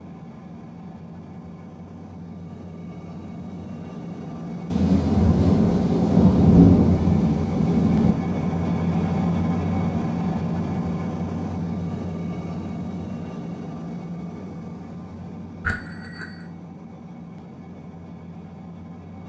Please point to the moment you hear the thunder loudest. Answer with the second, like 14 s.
7 s.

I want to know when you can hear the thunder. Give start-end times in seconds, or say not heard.
4.7-8.2.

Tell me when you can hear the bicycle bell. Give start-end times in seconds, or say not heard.
15.6-16.5.